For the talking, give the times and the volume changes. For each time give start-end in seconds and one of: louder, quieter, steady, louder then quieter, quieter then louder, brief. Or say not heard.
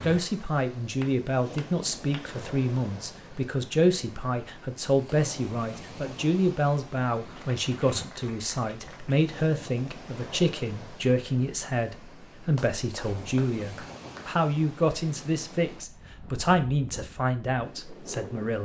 0.0-18.6 steady.